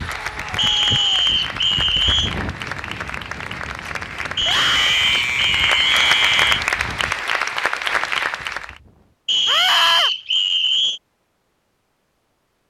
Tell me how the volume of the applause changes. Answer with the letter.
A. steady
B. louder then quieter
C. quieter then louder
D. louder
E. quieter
D.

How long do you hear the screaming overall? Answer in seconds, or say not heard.
4 s.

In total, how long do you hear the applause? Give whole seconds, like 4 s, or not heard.
9 s.